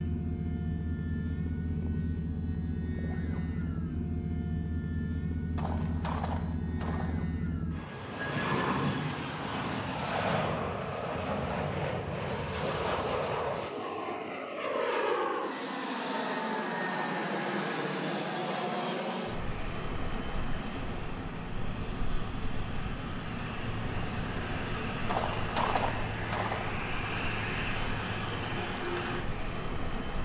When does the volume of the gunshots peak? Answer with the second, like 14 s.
26 s.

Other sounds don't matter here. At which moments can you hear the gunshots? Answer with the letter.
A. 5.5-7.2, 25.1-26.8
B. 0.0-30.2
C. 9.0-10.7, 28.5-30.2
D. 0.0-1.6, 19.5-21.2
A.